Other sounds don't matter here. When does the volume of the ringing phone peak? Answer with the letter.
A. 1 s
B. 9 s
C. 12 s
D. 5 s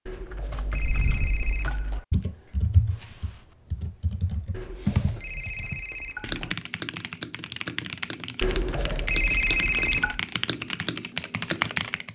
B.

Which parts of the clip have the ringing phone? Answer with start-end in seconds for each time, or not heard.
0.1-2.0, 4.5-6.5, 8.4-10.2.